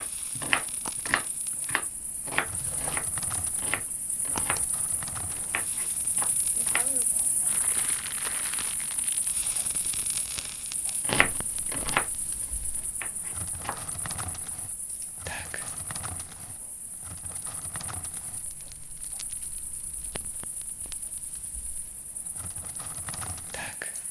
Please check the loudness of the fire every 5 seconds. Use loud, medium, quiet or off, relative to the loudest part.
medium, loud, loud, medium, medium.